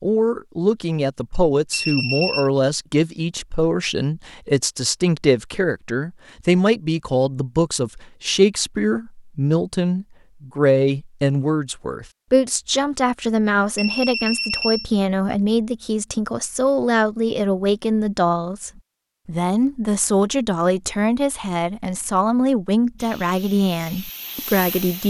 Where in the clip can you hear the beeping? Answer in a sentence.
The beeping can be heard from 1.7 to 2.5 s and from 13.8 to 14.9 s.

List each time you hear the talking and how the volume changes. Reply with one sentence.
The talking can be heard from 0.0 to 25.0 s, at a steady volume.